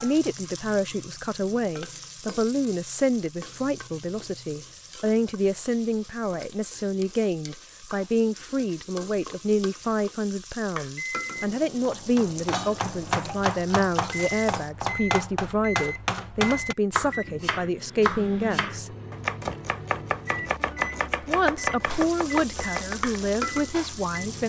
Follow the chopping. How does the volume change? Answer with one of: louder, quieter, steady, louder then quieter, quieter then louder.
steady.